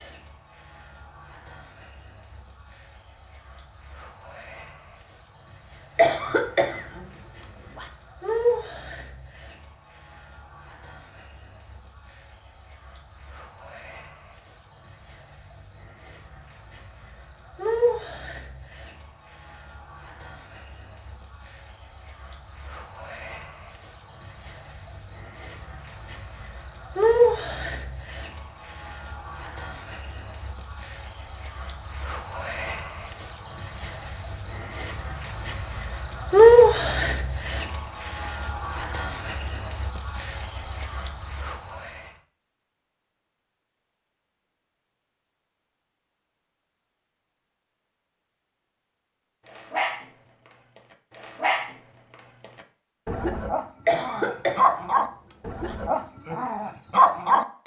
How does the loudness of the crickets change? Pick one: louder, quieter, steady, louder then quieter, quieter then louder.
quieter then louder.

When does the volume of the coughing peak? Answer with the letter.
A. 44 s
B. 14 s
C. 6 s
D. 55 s
C.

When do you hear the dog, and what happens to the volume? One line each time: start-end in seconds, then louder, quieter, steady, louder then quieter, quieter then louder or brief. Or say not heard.
49.5-57.6 louder.